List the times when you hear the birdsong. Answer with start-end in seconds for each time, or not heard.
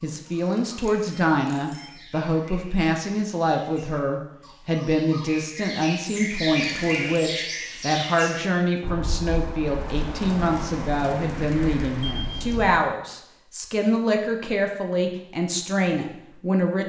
0.0-12.3.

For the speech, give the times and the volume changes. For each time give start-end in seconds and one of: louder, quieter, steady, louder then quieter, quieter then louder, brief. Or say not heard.
0.0-16.8 steady.